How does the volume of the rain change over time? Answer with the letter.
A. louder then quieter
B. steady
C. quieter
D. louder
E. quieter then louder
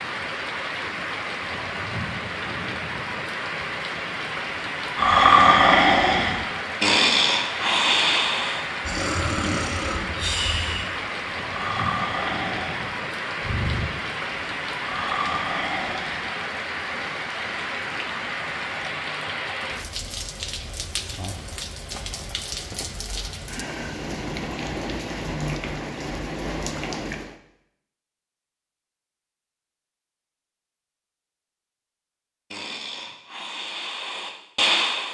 B.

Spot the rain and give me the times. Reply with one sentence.
The rain can be heard from 0.0 to 27.4 s.